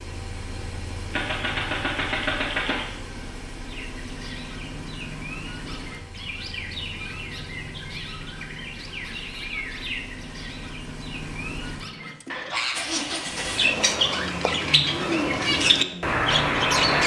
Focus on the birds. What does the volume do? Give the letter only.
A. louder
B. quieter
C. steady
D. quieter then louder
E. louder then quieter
A.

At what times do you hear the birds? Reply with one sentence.
The birds can be heard from 3.6 to 17.0 s.